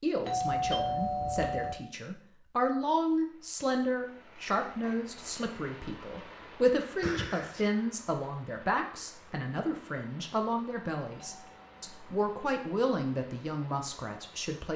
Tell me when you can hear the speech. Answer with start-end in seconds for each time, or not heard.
0.0-14.7.